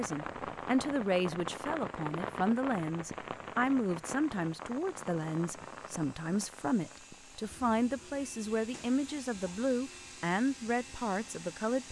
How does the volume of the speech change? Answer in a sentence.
The loudness of the speech stays about the same.